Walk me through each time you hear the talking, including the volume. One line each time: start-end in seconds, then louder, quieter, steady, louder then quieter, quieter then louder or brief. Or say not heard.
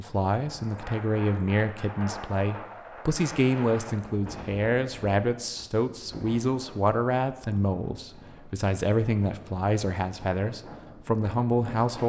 0.0-12.0 steady.